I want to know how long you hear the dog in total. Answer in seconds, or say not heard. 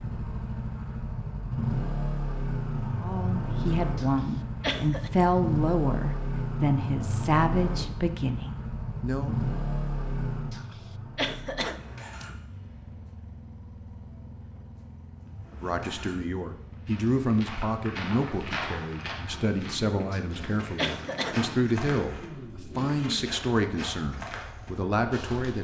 not heard.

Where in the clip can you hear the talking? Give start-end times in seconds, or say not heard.
3.0-9.3, 15.5-25.5.